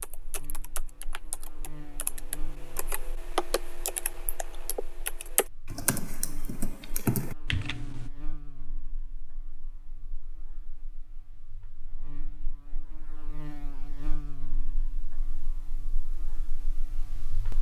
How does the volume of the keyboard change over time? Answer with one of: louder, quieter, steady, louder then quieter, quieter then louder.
louder.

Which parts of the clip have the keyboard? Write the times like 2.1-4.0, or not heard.
0.0-8.1.